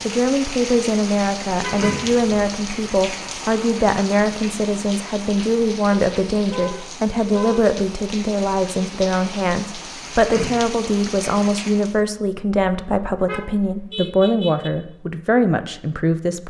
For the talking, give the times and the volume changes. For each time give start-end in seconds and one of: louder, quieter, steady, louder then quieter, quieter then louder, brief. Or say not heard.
0.0-16.4 steady.